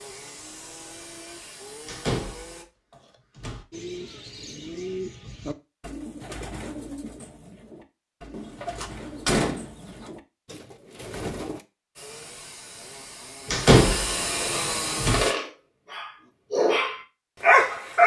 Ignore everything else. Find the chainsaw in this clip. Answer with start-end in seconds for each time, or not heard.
0.0-2.6, 11.9-15.3.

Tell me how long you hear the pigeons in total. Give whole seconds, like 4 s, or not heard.
8 s.